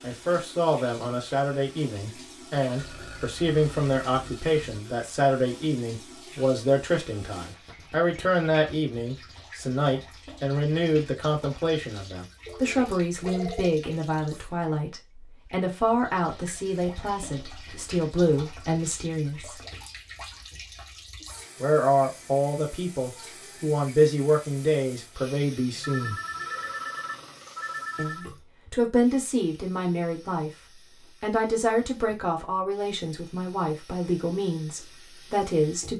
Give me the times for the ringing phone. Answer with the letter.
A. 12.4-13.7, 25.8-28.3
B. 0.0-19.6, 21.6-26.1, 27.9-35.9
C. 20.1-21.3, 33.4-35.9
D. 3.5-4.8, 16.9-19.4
A.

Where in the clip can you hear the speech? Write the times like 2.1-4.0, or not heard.
0.0-19.6, 21.6-26.1, 27.9-35.9.